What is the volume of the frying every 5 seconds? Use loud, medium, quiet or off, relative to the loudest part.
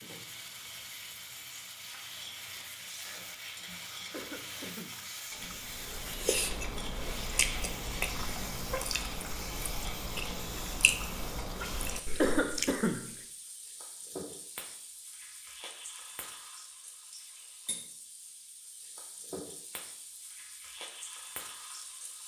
loud, loud, loud, medium, medium.